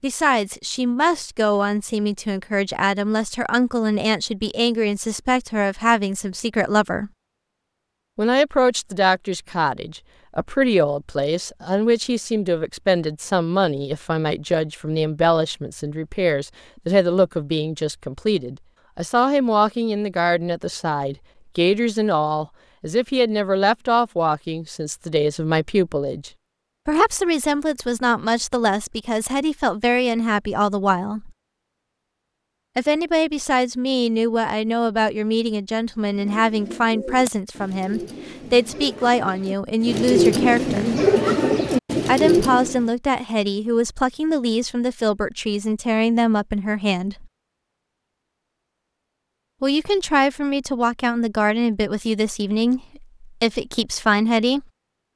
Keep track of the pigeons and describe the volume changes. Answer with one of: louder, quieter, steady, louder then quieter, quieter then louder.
louder.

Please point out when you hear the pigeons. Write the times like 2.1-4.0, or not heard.
36.0-42.9.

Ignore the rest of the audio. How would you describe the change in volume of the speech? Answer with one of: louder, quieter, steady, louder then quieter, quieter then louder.
steady.